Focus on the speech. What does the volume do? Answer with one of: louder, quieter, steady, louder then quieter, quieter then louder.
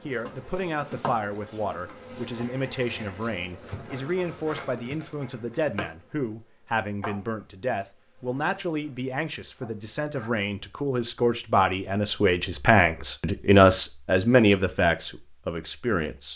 louder.